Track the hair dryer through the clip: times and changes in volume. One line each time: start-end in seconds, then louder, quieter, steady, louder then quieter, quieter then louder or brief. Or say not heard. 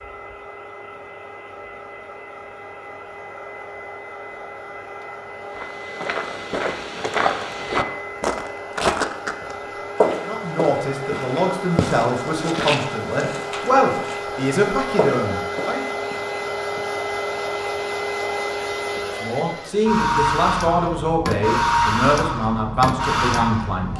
0.0-23.9 louder.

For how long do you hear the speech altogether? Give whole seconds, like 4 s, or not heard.
10 s.